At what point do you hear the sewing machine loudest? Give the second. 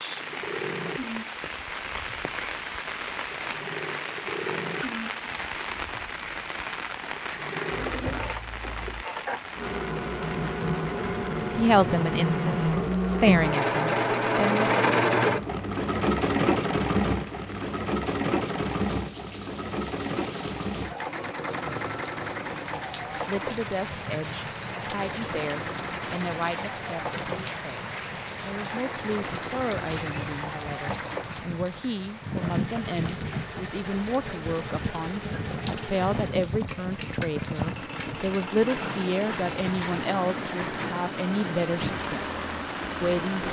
15 s.